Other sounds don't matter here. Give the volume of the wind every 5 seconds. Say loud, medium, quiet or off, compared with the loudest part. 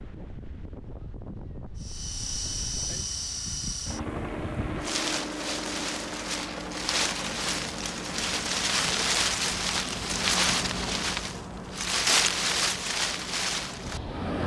quiet, loud, loud.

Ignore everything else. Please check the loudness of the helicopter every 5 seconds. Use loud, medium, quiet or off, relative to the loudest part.
loud, loud, off.